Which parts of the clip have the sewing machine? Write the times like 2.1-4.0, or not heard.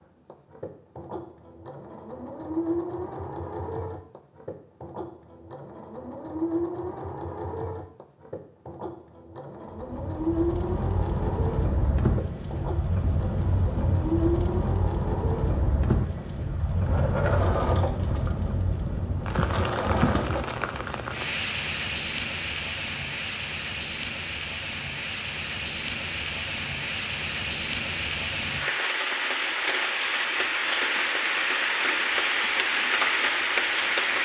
0.2-21.2.